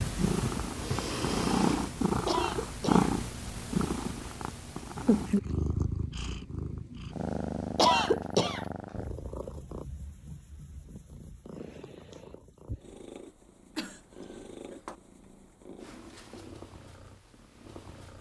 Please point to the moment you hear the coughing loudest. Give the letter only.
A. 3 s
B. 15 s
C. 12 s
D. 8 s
D.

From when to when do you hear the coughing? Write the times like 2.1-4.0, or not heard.
2.2-3.1, 7.8-8.7, 13.8-14.9.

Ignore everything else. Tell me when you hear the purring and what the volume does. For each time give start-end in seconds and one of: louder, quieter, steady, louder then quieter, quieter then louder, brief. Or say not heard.
0.0-18.1 quieter.